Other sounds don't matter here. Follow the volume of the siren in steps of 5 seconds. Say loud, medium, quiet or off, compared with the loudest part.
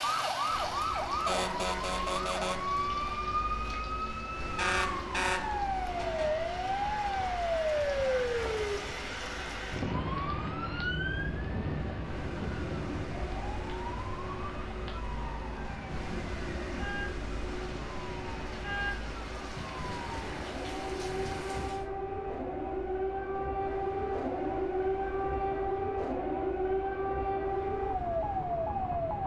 loud, loud, medium, medium, loud, loud.